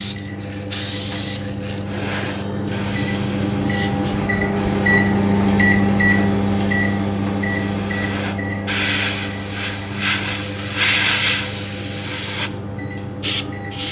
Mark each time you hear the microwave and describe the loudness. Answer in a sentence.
The microwave can be heard from 0.0 to 13.8 s, getting louder then quieter.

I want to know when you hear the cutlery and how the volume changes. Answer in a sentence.
The cutlery can't be heard in this clip.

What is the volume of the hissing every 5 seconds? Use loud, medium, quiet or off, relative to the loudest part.
medium, medium, loud.